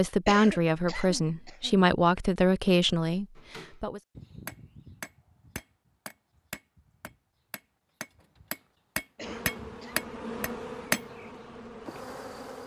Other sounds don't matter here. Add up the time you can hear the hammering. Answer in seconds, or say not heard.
8 s.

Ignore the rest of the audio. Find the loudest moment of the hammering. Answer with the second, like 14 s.
11 s.